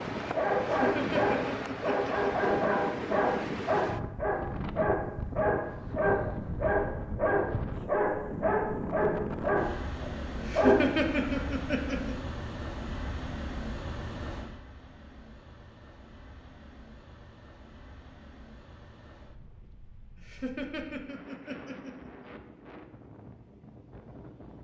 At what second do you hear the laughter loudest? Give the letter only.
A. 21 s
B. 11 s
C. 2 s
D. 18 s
B.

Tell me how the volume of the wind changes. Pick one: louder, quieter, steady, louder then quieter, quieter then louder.
quieter.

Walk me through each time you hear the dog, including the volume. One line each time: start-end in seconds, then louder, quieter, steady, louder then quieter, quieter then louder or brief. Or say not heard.
0.3-11.2 steady.